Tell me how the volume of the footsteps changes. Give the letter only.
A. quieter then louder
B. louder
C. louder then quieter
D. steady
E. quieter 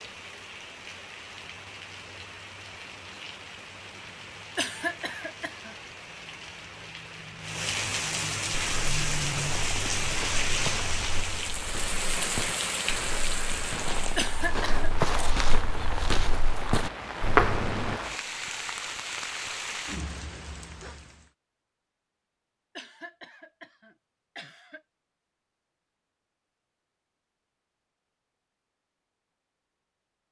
B.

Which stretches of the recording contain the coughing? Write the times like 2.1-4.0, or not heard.
4.5-5.8, 14.2-14.8, 22.8-24.8.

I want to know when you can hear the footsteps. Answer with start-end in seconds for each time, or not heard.
8.5-18.0.